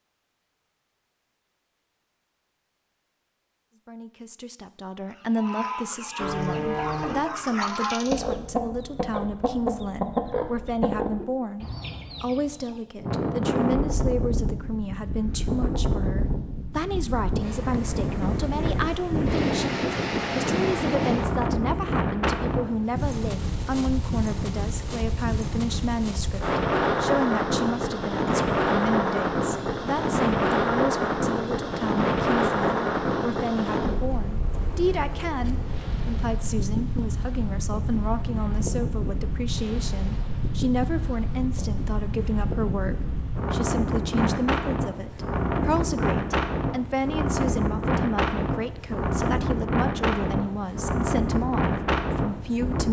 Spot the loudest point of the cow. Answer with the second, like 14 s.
7 s.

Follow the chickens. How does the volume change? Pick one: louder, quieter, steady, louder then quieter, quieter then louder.
louder then quieter.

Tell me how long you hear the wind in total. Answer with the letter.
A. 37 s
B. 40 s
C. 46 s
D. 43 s
B.